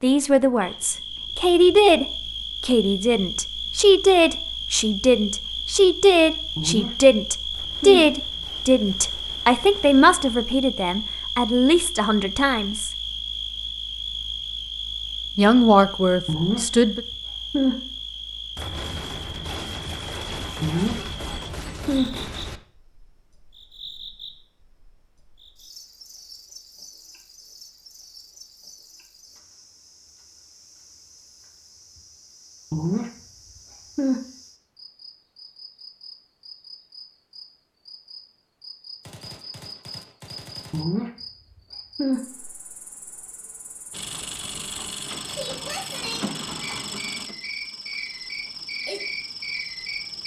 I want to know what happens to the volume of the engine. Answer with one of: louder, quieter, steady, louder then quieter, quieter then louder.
quieter.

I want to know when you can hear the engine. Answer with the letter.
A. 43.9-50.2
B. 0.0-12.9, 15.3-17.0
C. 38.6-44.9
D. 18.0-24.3
A.